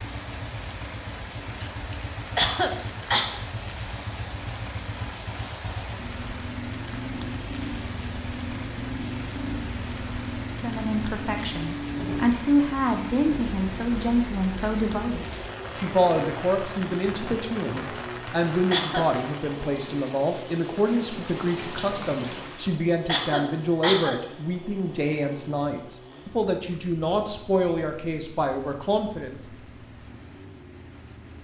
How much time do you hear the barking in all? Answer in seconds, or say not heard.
not heard.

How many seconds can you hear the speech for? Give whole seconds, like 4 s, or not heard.
19 s.